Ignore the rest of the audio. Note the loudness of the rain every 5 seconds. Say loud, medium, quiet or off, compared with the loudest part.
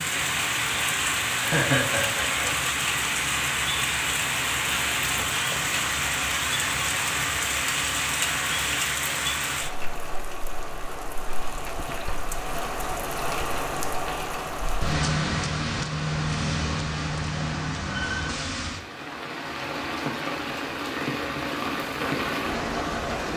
loud, loud, medium, loud, loud.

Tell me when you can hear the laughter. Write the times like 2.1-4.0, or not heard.
1.3-2.6.